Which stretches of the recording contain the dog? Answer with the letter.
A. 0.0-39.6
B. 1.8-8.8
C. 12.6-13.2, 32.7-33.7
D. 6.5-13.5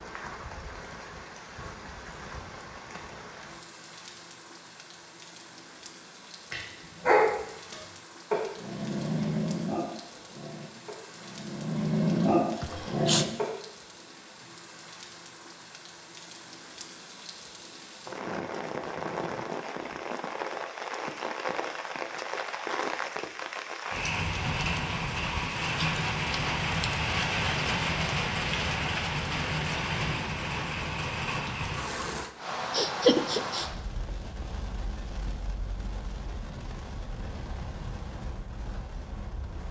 D.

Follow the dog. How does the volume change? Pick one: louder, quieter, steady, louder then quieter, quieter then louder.
quieter then louder.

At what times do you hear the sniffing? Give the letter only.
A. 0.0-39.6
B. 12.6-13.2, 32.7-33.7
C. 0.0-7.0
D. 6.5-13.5
B.